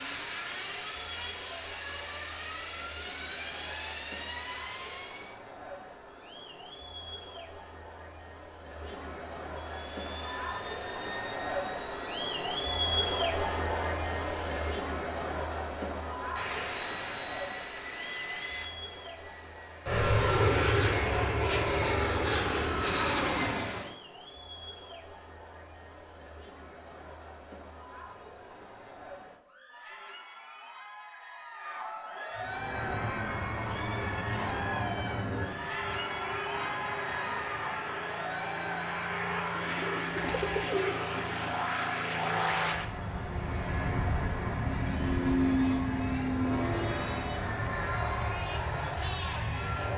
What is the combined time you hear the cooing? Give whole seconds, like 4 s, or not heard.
2 s.